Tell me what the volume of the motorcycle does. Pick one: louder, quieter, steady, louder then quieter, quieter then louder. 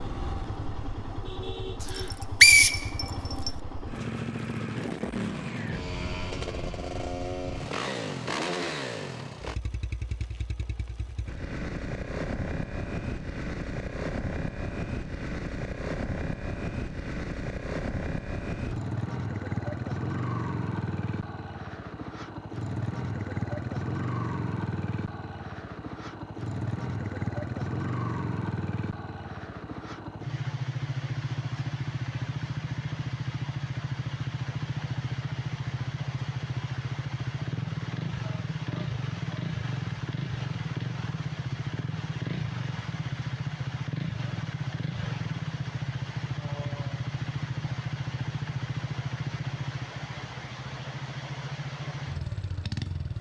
steady.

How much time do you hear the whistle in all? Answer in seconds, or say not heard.
2 s.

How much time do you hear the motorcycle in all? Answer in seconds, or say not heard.
53 s.